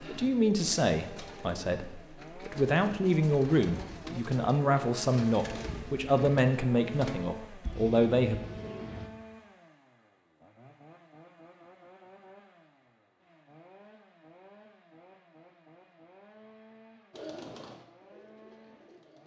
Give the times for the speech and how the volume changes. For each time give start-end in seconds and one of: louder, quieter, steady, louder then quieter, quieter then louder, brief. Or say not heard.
0.0-8.4 steady.